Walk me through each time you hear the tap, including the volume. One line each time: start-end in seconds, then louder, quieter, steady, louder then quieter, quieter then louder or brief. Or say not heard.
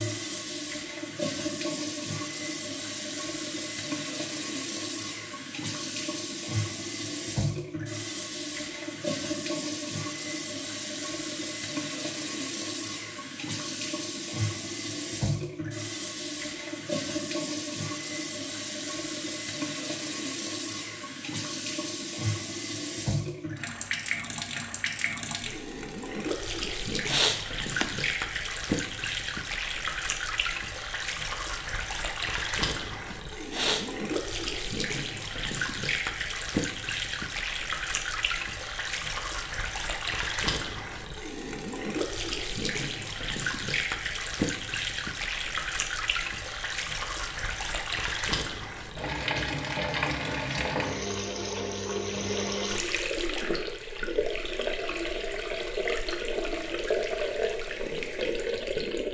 0.0-59.1 steady.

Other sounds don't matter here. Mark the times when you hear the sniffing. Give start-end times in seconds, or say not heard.
26.6-27.9, 33.1-33.9.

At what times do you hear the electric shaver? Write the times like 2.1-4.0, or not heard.
not heard.